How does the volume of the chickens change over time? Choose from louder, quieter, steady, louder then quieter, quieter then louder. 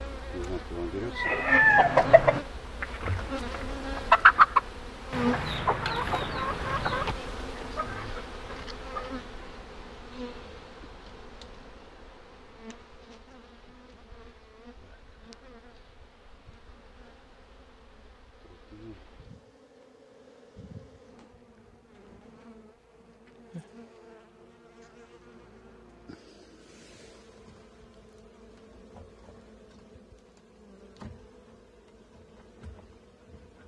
quieter.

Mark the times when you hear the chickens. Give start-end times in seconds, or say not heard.
1.1-9.2.